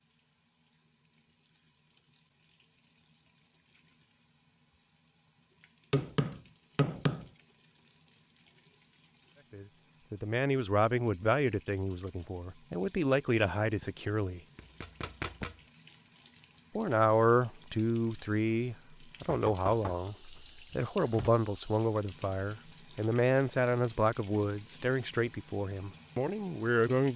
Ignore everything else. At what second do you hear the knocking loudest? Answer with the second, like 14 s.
7 s.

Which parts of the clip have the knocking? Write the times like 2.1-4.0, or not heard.
5.9-7.3, 13.8-15.6, 19.2-21.3.